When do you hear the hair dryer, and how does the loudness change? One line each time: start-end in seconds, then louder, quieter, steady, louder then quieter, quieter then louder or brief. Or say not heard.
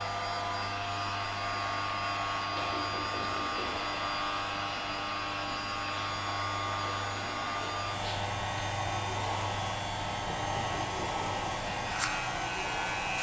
0.0-13.1 steady.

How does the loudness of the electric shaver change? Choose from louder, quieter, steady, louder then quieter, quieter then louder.
steady.